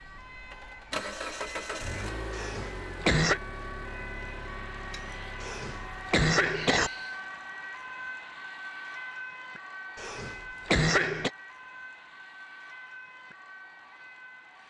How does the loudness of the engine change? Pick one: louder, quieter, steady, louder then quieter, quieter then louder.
quieter.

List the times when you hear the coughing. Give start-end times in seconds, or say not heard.
2.3-3.4, 5.4-6.9, 9.9-11.3.